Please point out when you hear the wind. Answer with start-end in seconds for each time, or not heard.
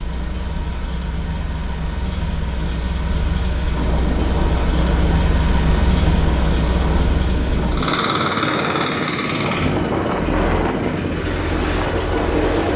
3.8-12.7.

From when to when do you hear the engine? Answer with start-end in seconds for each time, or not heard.
0.0-12.7.